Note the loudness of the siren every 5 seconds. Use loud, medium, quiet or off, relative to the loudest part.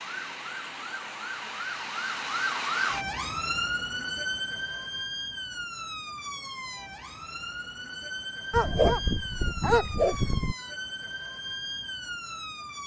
loud, medium, medium.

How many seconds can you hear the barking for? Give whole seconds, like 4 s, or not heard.
2 s.